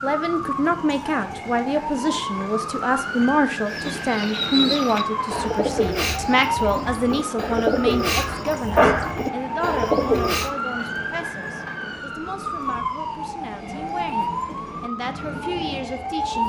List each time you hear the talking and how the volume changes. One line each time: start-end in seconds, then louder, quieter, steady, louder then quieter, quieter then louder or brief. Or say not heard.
0.0-16.4 quieter.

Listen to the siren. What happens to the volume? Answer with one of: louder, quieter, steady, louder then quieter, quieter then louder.
steady.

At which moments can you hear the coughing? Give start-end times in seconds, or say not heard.
8.2-9.1.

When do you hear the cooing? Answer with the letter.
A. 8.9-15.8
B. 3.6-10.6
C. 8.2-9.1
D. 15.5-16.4
B.